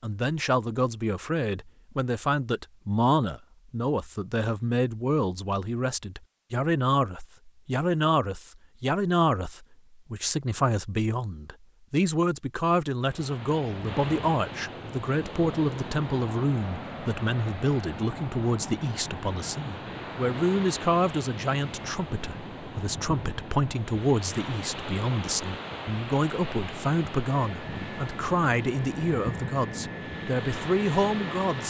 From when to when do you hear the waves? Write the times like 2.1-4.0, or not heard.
13.0-31.6.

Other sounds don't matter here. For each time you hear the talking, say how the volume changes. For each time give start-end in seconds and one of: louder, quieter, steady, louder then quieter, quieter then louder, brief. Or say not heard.
0.0-31.6 steady.